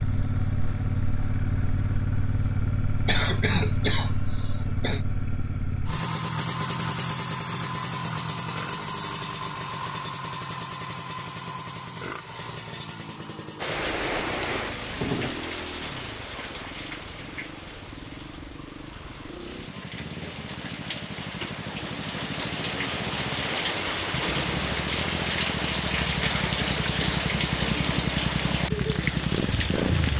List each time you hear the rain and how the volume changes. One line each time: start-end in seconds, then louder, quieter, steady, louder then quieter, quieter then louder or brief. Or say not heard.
13.6-30.1 quieter then louder.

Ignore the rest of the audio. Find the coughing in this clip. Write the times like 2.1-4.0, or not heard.
3.0-5.0, 26.2-27.2.